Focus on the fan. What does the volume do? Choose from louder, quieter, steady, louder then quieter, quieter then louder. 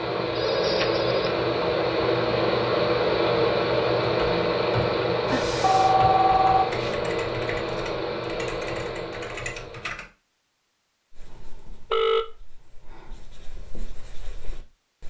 quieter.